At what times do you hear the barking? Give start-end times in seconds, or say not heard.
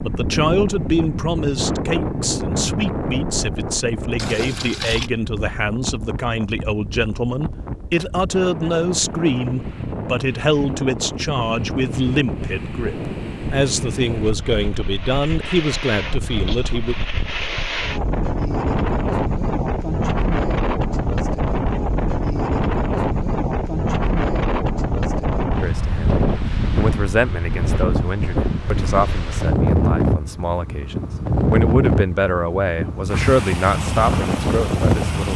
not heard.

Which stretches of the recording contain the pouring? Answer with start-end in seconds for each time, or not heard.
4.2-5.1.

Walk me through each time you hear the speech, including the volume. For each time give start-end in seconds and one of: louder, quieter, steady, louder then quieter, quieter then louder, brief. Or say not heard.
0.0-16.9 steady
25.6-35.3 quieter then louder.